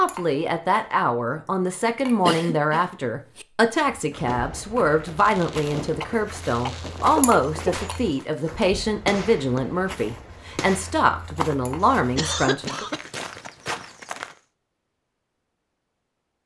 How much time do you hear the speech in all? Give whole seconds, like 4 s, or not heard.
13 s.